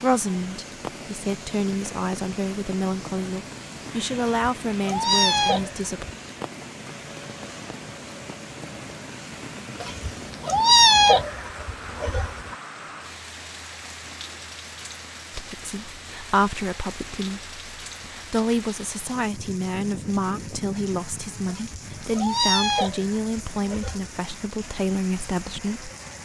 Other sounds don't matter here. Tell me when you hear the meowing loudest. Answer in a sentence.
The loudest moment of the meowing is at 11 seconds.